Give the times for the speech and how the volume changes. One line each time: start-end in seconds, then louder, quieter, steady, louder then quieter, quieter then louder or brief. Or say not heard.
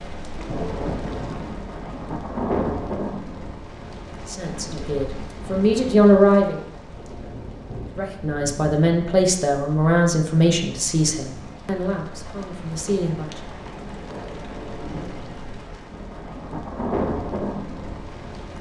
4.2-6.6 brief
8.0-13.4 quieter.